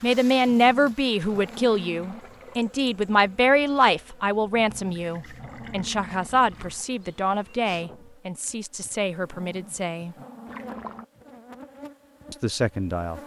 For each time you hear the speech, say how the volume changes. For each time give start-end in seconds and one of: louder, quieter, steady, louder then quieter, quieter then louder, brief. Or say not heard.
0.0-10.2 quieter
12.3-13.2 brief.